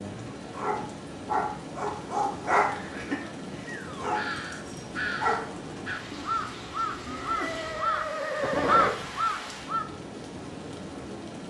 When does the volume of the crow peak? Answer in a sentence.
The loudest moment of the crow is at 9 seconds.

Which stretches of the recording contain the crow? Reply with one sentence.
You can hear the crow from 4.1 to 9.8 s.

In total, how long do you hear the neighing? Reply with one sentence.
You can hear the neighing for 3 seconds altogether.